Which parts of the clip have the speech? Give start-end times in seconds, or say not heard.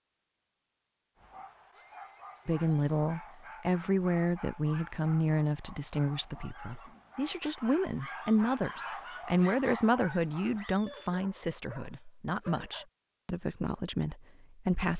2.5-14.9.